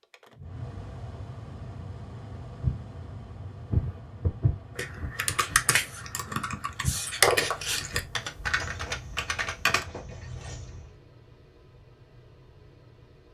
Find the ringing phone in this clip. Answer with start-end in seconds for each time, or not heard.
7.2-8.5.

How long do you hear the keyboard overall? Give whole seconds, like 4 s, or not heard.
5 s.